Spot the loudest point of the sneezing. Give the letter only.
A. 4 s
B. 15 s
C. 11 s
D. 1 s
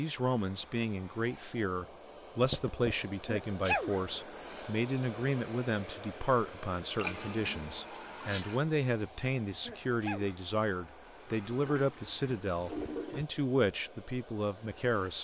A.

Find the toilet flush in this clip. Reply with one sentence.
The toilet flush can be heard from 2.4 to 2.9 s, from 6.8 to 8.6 s and from 11.2 to 13.2 s.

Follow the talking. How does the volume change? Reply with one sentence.
The loudness of the talking stays about the same.